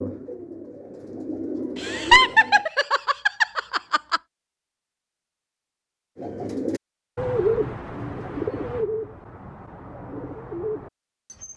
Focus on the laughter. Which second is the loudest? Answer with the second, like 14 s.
2 s.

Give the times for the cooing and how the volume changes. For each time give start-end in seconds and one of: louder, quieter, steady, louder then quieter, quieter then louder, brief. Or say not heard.
0.0-2.6 brief
6.2-11.5 quieter then louder.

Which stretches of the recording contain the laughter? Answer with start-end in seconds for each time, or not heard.
1.8-4.2.